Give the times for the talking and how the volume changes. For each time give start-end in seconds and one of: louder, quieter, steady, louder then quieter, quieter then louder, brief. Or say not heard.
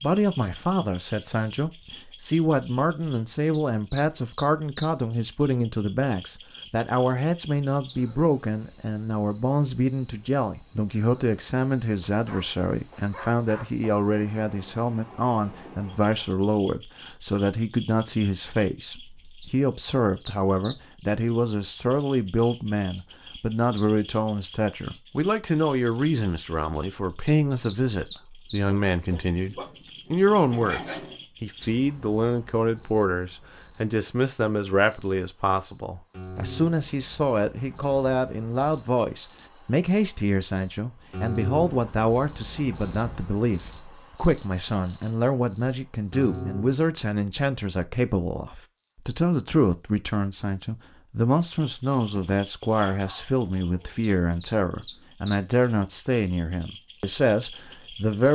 0.0-58.3 steady.